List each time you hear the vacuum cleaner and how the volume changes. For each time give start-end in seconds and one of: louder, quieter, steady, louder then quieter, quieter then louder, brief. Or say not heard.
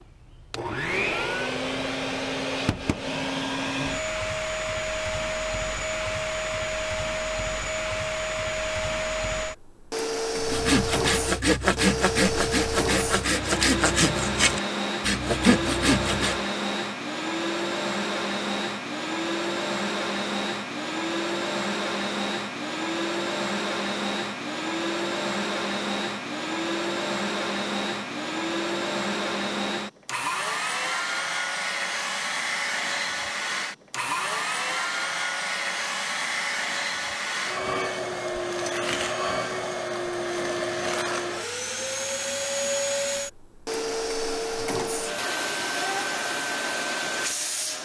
0.0-47.7 steady.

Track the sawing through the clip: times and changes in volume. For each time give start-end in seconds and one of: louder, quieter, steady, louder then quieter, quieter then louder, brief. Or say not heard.
10.3-16.4 steady.